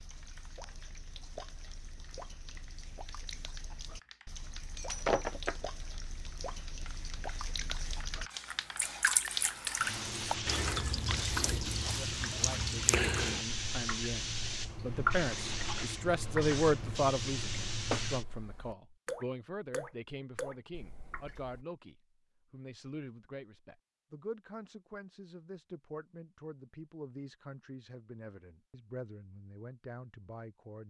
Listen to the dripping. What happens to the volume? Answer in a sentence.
The volume of the dripping goes up.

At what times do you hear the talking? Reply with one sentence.
The talking can be heard from 12.1 to 30.8 s.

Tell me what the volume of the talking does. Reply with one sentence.
The loudness of the talking goes up, then down.